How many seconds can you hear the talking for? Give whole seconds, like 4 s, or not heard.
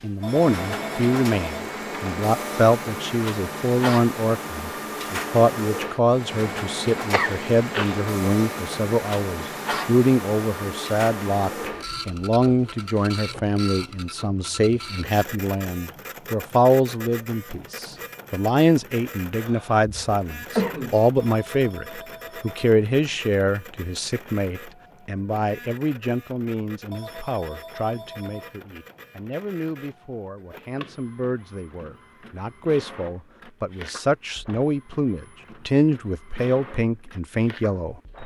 38 s.